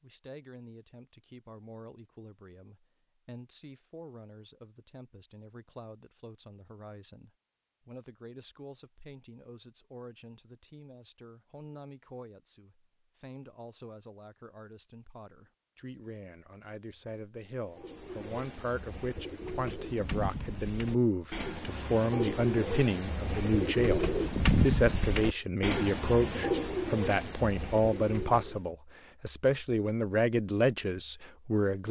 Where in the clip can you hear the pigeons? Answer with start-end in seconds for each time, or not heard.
17.6-28.7.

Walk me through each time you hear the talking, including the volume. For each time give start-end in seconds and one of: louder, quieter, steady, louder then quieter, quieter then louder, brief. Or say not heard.
0.0-31.8 louder.